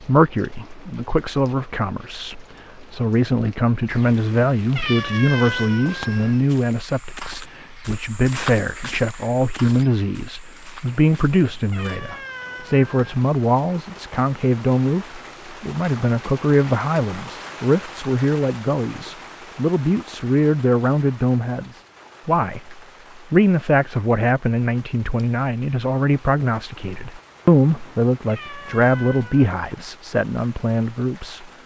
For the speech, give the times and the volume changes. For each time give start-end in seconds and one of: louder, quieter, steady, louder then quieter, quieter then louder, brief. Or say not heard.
0.0-31.4 steady.